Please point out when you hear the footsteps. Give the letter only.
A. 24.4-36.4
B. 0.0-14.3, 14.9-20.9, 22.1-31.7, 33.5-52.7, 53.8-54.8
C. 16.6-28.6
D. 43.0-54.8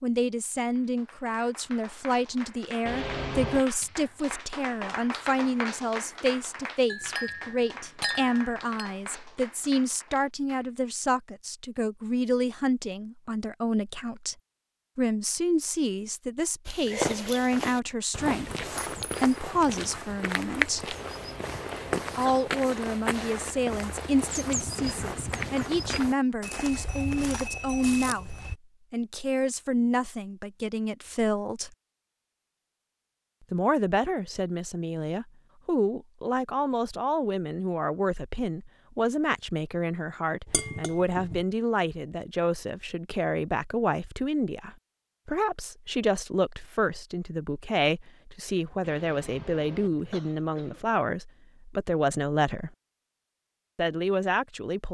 C.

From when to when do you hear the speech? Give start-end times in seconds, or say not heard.
0.0-14.3, 14.9-20.9, 22.1-31.7, 33.5-52.7, 53.8-54.8.